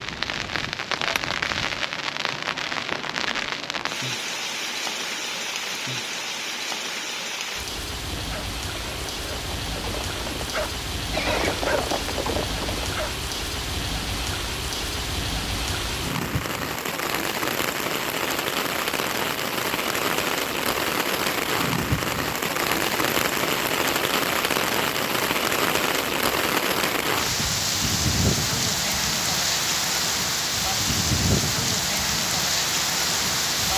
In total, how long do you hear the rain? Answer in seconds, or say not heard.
34 s.